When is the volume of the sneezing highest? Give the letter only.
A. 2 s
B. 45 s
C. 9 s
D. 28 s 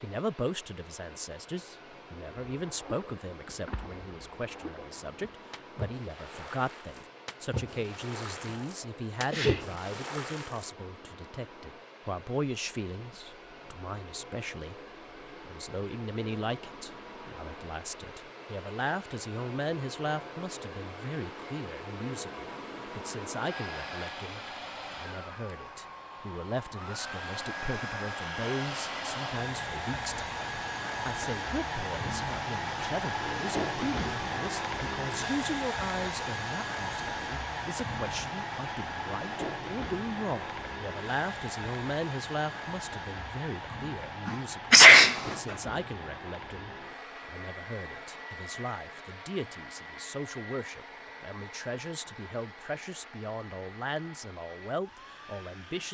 B.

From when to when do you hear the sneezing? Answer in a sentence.
You can hear the sneezing from 8.4 to 9.7 s and from 44.2 to 45.2 s.